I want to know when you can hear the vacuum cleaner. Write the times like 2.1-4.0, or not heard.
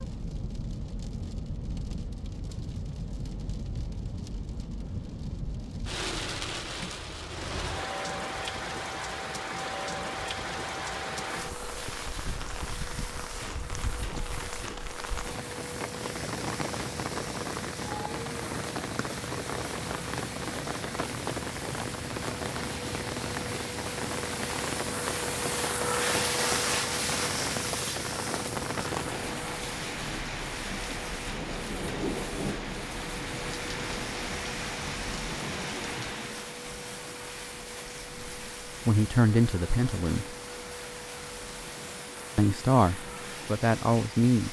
11.3-44.4.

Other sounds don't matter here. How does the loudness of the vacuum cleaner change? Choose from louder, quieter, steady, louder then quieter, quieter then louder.
louder then quieter.